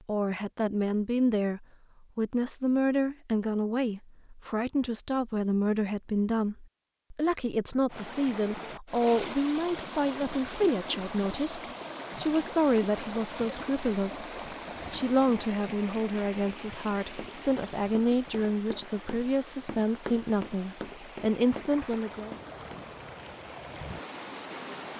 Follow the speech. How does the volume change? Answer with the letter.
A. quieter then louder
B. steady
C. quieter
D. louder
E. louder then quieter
B.